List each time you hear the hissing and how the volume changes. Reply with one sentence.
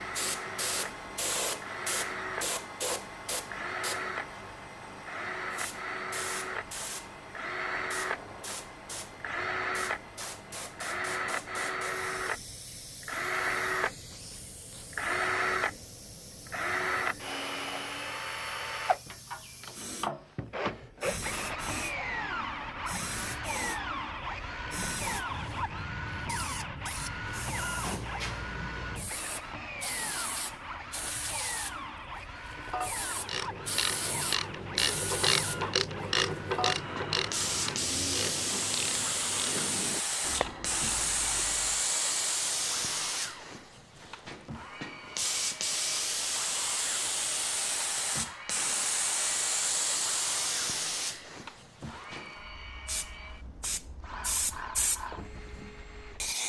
You can hear the hissing from 0.0 to 31.8 s, getting quieter then louder; briefly from 32.7 to 35.6 s; and from 36.5 to 56.4 s, getting quieter.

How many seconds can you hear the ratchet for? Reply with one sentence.
The ratchet can be heard for 9 seconds in total.